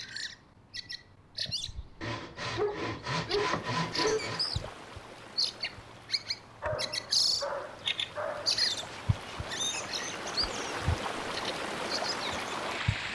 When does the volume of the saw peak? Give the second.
4 s.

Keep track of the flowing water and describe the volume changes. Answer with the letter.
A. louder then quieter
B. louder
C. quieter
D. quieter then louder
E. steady
D.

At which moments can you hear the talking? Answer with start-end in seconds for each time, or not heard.
not heard.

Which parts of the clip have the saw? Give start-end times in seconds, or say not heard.
2.0-4.5, 8.8-9.8.